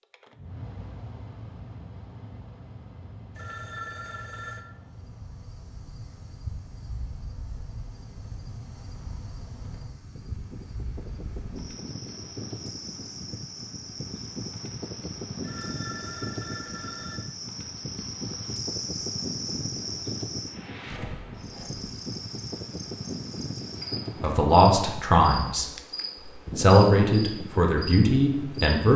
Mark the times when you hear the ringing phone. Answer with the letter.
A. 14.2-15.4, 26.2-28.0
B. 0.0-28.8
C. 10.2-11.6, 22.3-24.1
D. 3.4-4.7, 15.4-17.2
D.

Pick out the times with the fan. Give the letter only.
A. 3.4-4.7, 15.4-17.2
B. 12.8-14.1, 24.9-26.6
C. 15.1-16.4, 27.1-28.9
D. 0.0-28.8
D.